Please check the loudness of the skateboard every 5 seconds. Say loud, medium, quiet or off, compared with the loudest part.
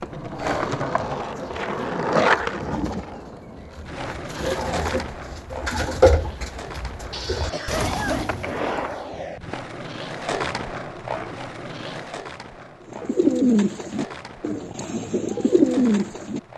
loud, medium, medium, quiet.